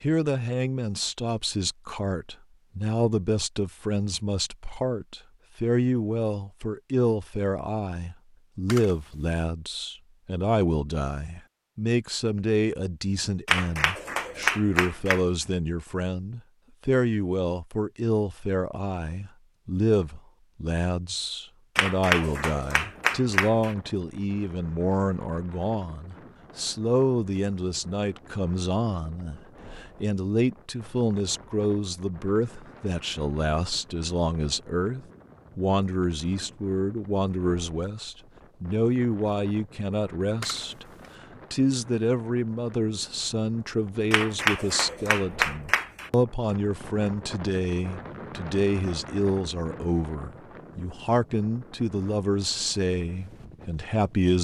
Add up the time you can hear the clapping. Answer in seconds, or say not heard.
6 s.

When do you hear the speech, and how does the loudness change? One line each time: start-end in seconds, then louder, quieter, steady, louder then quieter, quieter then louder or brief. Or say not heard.
0.0-40.9 steady
41.5-54.3 steady.